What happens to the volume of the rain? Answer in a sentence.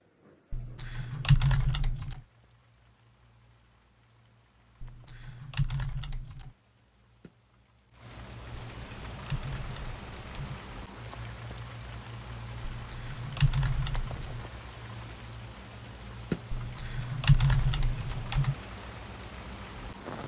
The volume of the rain goes up.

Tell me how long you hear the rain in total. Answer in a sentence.
You can hear the rain for 20 seconds altogether.